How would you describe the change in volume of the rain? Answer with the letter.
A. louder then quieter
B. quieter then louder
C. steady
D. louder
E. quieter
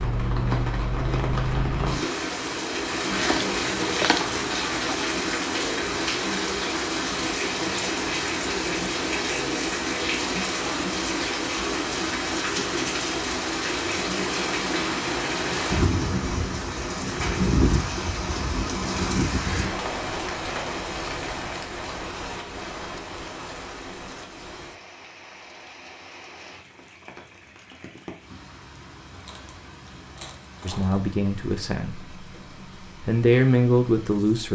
E.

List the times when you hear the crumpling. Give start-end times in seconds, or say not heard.
3.1-5.0, 29.1-31.0.